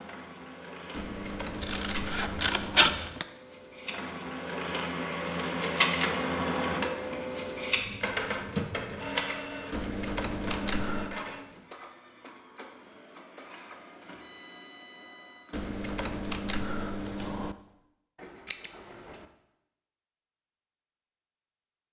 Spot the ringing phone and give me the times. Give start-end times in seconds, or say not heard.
not heard.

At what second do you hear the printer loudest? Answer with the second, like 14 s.
6 s.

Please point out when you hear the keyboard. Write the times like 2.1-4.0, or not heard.
0.9-3.0, 9.7-11.2, 15.5-17.6.